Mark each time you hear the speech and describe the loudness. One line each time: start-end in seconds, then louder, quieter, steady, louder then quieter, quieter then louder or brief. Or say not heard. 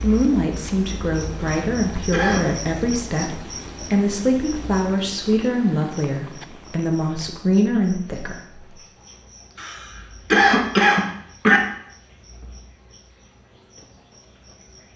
0.0-8.7 steady.